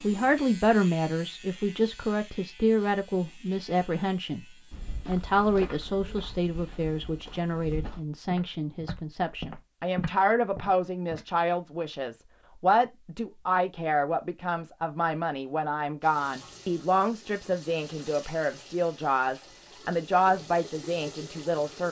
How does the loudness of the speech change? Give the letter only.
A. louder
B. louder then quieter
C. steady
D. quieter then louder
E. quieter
C.